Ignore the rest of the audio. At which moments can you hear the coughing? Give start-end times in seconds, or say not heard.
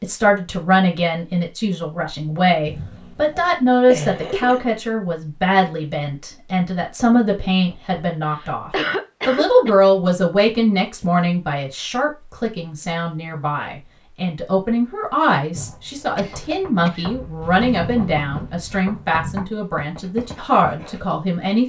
3.9-4.7, 8.2-9.8, 16.1-17.1.